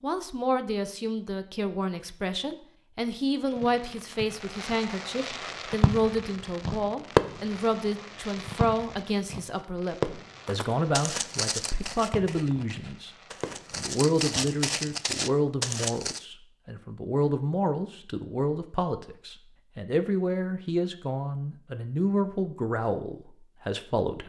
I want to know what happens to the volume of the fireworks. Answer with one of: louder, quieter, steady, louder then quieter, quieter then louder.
louder then quieter.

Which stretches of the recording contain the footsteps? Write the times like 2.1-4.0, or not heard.
10.4-16.2.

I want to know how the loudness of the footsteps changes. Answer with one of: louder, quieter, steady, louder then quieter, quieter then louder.
quieter then louder.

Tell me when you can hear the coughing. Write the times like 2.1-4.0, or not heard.
not heard.